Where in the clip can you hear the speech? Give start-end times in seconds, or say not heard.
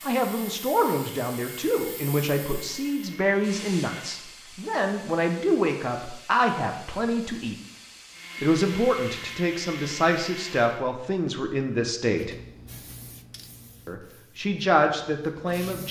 0.1-7.5, 8.4-12.3, 13.8-15.8.